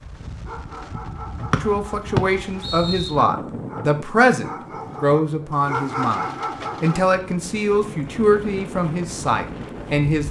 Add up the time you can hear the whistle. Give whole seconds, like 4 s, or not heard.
2 s.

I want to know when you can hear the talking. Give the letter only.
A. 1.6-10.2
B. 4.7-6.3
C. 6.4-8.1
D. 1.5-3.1
A.